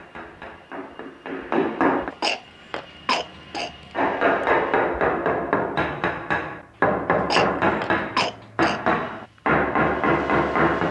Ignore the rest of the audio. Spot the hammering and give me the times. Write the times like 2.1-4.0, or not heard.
0.0-2.1, 3.9-10.8.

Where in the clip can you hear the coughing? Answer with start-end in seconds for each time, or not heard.
2.1-3.7, 7.2-8.8.